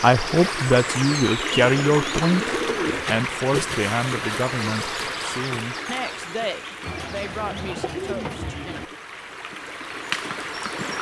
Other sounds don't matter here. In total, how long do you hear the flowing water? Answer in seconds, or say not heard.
11 s.